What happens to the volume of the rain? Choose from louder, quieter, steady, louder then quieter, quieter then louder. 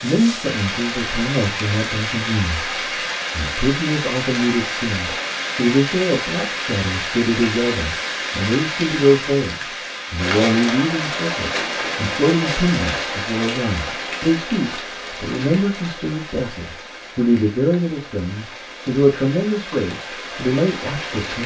quieter.